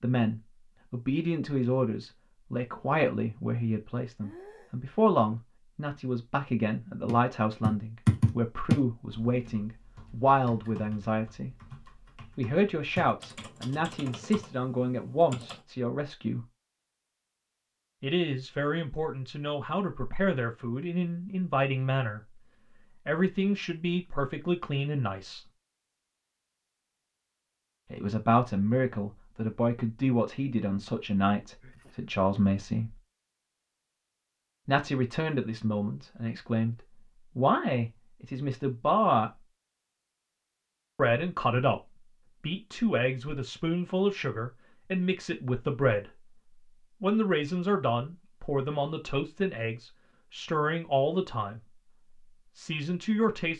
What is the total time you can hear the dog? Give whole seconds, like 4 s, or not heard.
not heard.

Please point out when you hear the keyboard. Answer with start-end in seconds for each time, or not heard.
7.0-15.7.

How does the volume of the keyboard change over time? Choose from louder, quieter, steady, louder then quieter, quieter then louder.
quieter then louder.